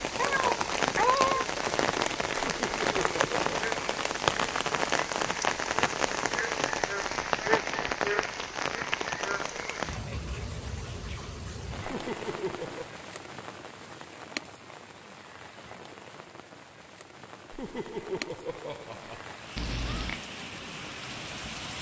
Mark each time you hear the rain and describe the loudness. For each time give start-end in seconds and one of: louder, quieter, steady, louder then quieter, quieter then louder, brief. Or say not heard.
0.0-21.7 quieter.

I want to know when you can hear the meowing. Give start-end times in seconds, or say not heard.
0.1-1.4, 19.6-20.2.